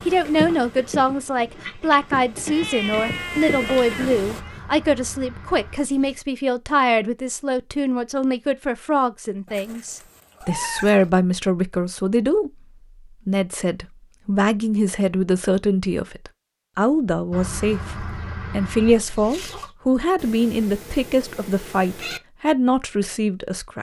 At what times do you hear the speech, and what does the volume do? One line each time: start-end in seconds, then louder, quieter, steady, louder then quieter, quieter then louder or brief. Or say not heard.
0.1-23.7 steady.